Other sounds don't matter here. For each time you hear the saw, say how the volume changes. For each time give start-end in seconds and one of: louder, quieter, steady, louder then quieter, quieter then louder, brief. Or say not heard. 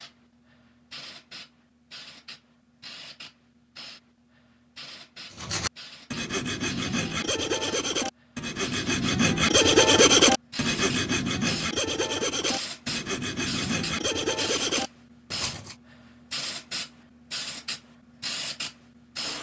5.3-15.8 louder then quieter.